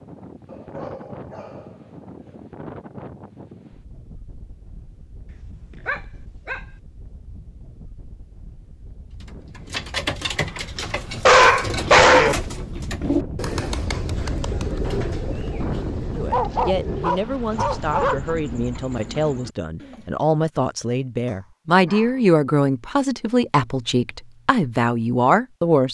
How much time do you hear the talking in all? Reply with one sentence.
You can hear the talking for 10 seconds altogether.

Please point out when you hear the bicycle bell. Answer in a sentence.
The bicycle bell can't be heard in this clip.